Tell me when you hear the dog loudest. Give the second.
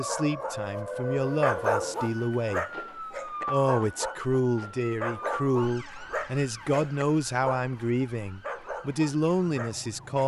2 s.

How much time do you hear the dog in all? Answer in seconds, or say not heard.
10 s.